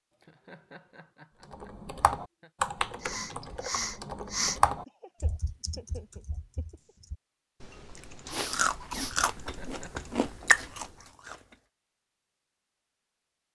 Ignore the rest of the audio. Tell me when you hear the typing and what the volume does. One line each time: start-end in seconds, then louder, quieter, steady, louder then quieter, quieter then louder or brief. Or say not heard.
1.5-10.9 quieter.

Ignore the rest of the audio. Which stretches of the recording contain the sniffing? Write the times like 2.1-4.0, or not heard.
3.0-4.6, 8.2-9.2.